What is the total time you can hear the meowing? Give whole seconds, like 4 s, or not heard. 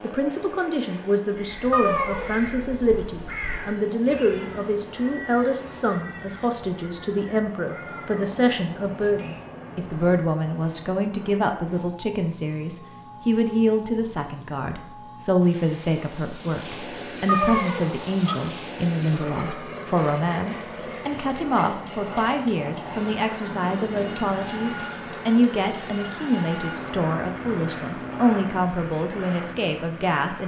2 s.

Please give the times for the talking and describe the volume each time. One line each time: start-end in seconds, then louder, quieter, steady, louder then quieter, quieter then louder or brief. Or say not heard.
0.0-30.4 steady.